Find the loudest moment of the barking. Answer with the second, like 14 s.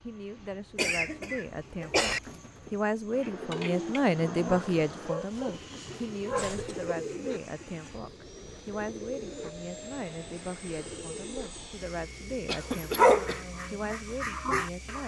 13 s.